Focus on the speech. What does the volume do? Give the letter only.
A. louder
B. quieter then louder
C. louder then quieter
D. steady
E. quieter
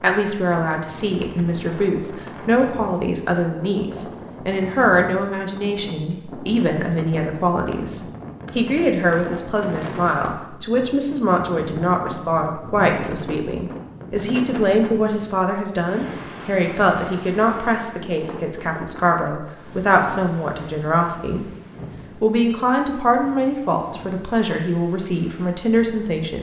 D.